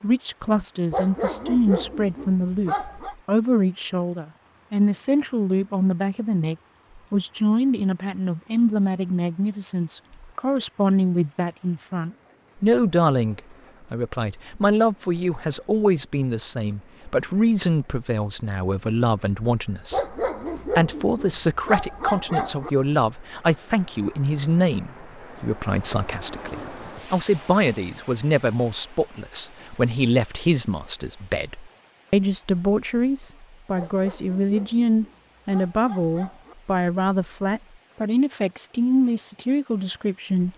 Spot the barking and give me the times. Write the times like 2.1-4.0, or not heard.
0.9-3.1, 19.9-22.7, 33.8-36.5.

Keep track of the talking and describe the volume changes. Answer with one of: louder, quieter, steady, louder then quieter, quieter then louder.
steady.